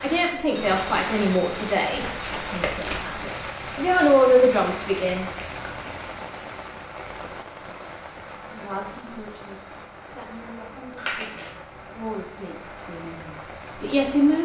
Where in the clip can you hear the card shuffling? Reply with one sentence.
You can hear the card shuffling from 1.9 to 3.0 s, from 5.2 to 5.8 s and from 10.9 to 11.6 s.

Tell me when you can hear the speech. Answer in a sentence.
You can hear the speech from 0.0 to 5.3 s and from 8.5 to 14.4 s.